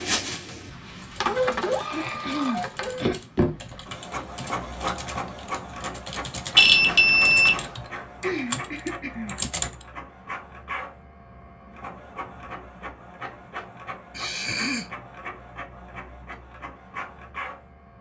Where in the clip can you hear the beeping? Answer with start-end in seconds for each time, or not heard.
6.5-7.7.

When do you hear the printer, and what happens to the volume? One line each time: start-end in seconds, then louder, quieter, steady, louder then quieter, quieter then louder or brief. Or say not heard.
0.0-17.9 quieter.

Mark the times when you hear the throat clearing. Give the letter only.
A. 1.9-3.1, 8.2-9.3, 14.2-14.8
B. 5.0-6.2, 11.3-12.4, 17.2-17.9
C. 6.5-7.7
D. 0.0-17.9
A.